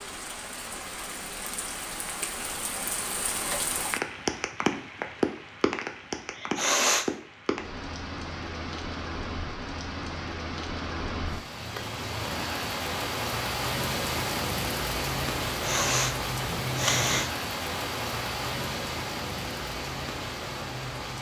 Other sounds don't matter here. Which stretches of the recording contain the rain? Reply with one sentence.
You can hear the rain from 0.0 to 21.1 s.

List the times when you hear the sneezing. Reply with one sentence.
You can hear the sneezing from 6.3 to 7.0 s and from 15.4 to 17.2 s.